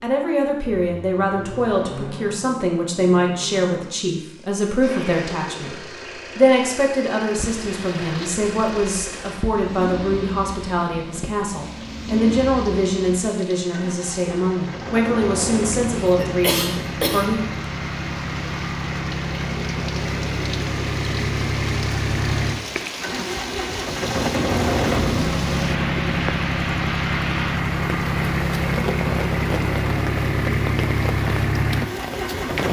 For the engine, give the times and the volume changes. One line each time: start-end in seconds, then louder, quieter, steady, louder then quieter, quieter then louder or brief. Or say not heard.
0.1-32.6 louder.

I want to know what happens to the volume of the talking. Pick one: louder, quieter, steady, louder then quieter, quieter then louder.
steady.